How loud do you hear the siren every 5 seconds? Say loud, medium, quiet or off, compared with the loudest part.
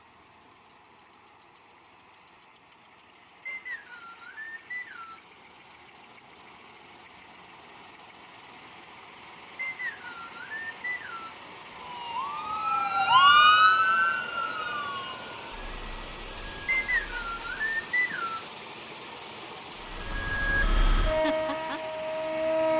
off, off, loud, quiet, medium.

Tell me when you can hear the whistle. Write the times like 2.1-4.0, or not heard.
3.5-5.2, 9.6-11.4, 16.6-18.5.